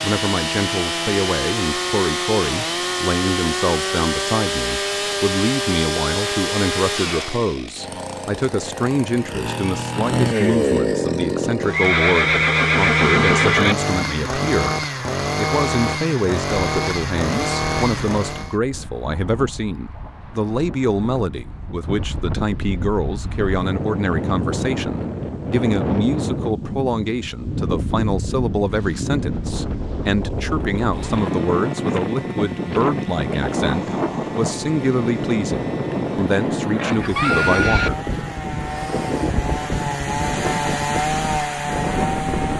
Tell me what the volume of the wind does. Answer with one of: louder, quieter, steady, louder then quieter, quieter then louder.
louder.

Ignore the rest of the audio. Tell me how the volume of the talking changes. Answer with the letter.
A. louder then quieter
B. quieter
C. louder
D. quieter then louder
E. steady
E.